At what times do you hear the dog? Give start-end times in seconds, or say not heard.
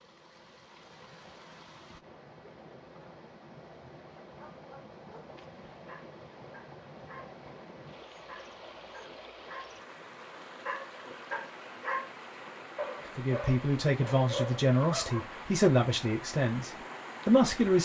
4.3-7.3, 8.2-9.8, 10.7-15.3.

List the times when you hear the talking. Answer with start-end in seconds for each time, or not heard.
13.2-17.7.